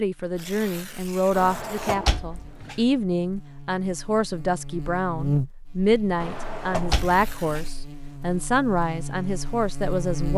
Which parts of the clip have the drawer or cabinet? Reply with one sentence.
The drawer or cabinet can be heard from 1.3 to 2.8 s and from 6.2 to 7.7 s.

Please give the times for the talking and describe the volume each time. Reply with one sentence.
You can hear the talking from 0.0 to 10.3 s, at a steady volume.